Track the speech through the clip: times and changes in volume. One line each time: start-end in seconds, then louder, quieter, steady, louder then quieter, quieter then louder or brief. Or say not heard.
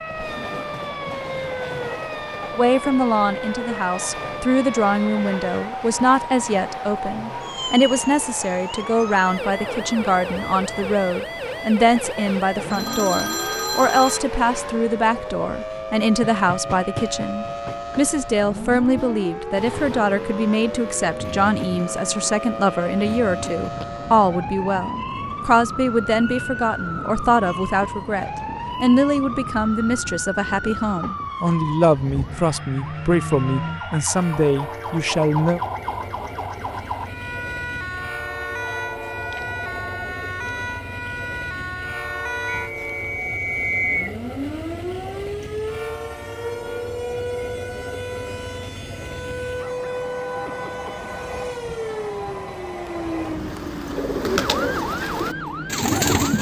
2.5-35.6 steady.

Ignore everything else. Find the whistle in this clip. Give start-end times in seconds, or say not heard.
42.7-44.1.